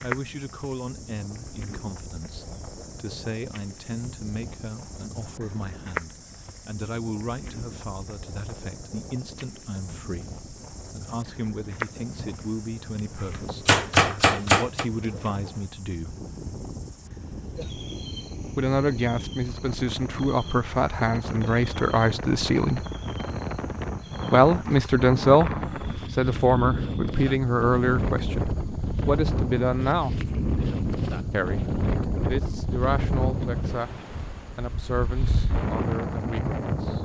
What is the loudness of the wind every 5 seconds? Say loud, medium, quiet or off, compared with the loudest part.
quiet, quiet, quiet, medium, medium, loud, loud, loud.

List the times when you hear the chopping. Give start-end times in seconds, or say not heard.
13.2-14.8.